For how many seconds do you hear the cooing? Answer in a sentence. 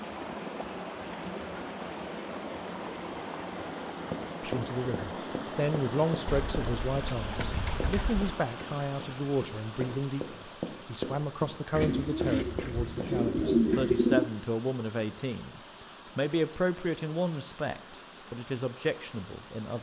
The cooing can be heard for 5 seconds in total.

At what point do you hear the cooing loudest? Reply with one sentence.
The loudest moment of the cooing is at 14 seconds.